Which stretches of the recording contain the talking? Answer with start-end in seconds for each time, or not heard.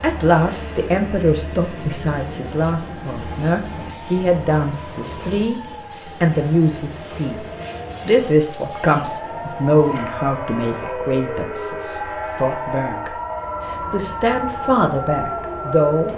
0.0-5.6, 6.2-13.2, 13.9-16.1.